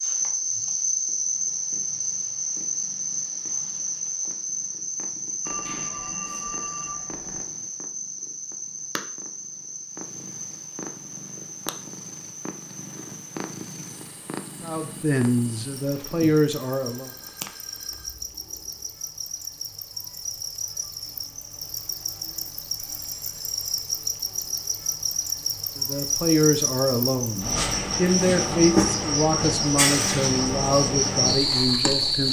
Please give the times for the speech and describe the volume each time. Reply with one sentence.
You can hear the speech briefly from 14.6 to 17.1 s; and from 25.8 to 32.2 s, at a steady volume.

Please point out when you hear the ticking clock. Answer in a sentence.
You can't hear the ticking clock here.